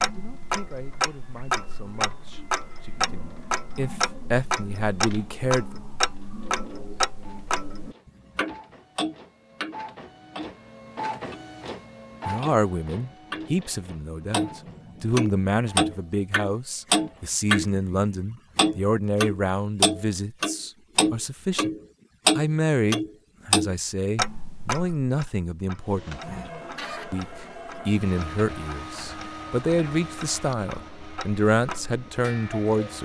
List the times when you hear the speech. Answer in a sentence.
The speech can be heard from 0.0 to 5.8 s, from 12.2 to 21.7 s, from 22.4 to 26.5 s and from 27.1 to 33.0 s.